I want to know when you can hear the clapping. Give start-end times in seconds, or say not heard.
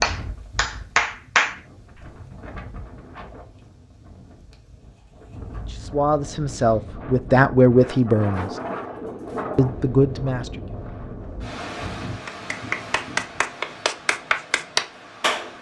0.0-2.0, 12.2-15.5.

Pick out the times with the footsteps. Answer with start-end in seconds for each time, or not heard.
not heard.